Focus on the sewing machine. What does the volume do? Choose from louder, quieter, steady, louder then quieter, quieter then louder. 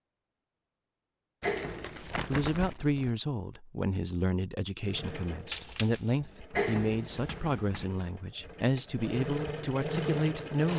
louder.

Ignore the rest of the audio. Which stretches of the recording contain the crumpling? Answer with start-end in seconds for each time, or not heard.
1.4-3.1, 5.5-6.2.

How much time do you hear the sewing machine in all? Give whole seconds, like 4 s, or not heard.
6 s.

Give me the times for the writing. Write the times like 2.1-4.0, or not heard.
1.4-2.8, 6.5-7.8.